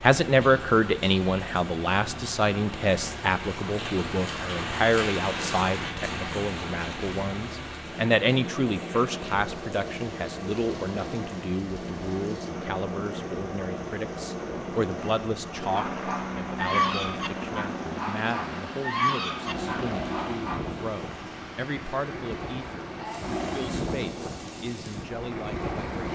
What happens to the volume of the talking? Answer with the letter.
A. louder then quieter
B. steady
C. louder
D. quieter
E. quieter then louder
D.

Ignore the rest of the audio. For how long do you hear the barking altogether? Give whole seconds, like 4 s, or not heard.
5 s.